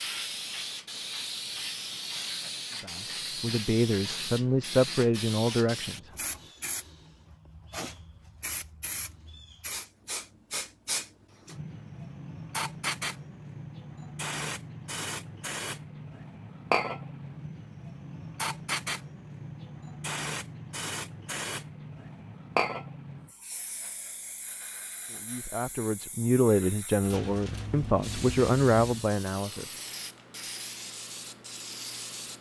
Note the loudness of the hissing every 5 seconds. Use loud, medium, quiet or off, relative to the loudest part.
loud, medium, loud, loud, loud, medium, medium.